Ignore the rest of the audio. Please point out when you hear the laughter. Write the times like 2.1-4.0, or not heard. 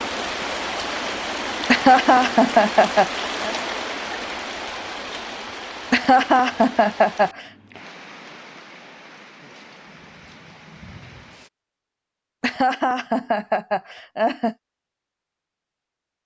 1.6-3.5, 5.9-7.5, 12.4-14.6.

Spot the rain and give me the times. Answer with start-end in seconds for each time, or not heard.
0.0-11.5.